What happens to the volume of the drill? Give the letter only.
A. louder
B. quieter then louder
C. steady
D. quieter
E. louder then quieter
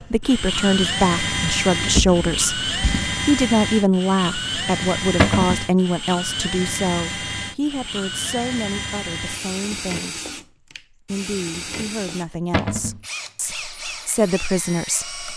D.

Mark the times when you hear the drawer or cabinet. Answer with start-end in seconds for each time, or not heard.
1.8-3.2, 5.2-5.7, 12.5-13.0.